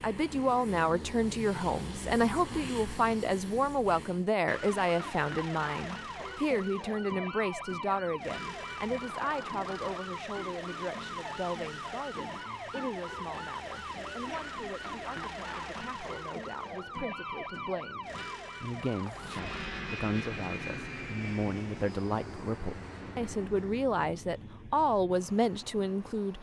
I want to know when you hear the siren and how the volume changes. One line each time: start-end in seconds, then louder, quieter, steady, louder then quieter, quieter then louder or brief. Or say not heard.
4.5-19.7 steady.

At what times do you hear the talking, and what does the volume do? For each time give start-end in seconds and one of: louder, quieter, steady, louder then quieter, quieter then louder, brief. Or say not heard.
0.0-26.3 quieter then louder.